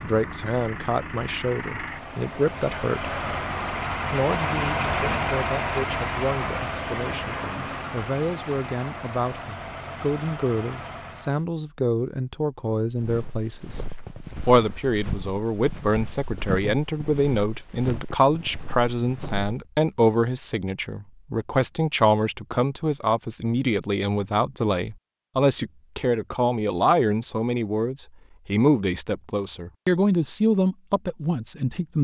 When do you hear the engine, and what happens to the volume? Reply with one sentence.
The engine can be heard from 0.0 to 11.4 s, getting louder then quieter.